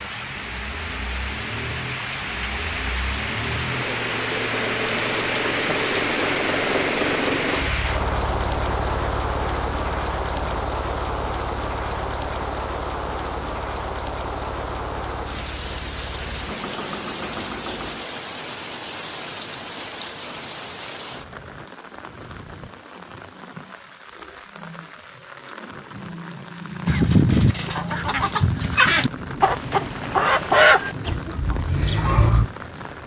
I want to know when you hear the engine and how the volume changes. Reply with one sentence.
You can hear the engine from 0.0 to 18.1 s, getting louder then quieter.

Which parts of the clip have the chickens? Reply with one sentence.
You can hear the chickens from 26.9 to 32.5 s.